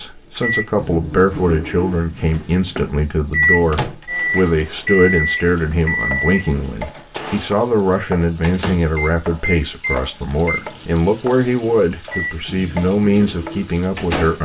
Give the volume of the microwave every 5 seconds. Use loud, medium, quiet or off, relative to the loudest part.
loud, loud, medium.